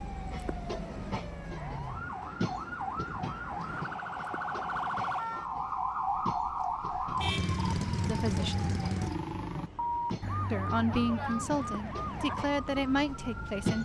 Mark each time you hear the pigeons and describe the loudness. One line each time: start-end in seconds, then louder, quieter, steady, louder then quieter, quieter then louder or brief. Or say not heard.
not heard.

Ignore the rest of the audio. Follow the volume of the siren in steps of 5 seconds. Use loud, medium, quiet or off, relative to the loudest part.
medium, loud, medium.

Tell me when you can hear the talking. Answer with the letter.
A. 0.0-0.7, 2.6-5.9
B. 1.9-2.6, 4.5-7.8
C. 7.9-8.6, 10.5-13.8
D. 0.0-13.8
C.